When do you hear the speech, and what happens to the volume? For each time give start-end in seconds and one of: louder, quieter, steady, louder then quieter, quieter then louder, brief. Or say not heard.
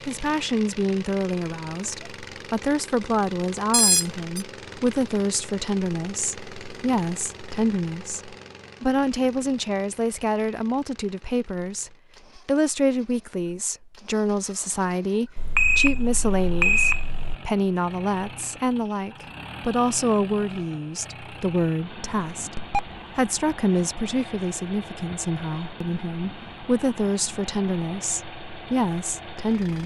0.1-29.8 steady.